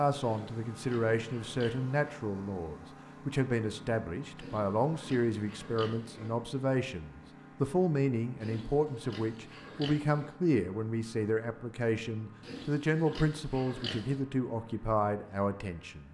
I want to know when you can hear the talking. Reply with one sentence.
The talking can be heard from 0.0 to 16.0 s.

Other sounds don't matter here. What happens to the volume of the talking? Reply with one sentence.
The loudness of the talking stays about the same.